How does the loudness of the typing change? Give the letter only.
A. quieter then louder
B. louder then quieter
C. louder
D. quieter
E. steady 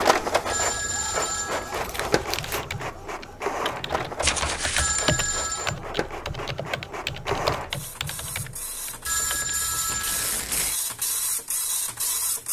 B.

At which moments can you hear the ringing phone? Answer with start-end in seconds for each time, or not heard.
0.5-2.6, 4.8-5.8, 9.1-10.5.